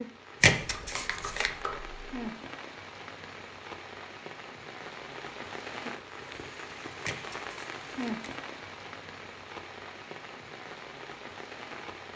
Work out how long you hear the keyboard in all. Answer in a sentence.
You can hear the keyboard for 2 seconds altogether.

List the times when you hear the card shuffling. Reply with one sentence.
The card shuffling can be heard from 0.4 to 1.5 s and from 7.0 to 8.3 s.